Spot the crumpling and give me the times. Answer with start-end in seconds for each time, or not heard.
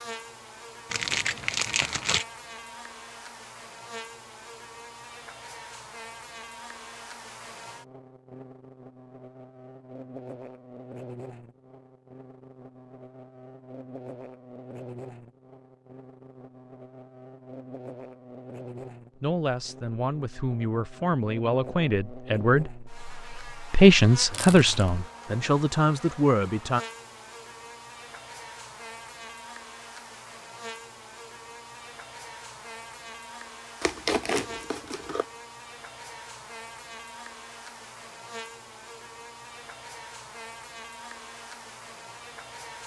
0.9-2.2, 24.3-24.9, 33.8-35.2.